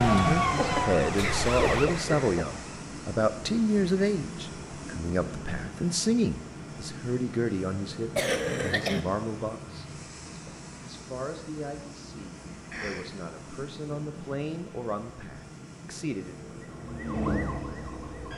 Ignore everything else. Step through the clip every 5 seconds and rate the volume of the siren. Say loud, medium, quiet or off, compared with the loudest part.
loud, off, off, medium.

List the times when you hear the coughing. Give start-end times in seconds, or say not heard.
0.6-2.5, 8.2-9.0, 12.7-13.1.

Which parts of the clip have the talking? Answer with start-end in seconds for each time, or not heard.
0.1-16.4.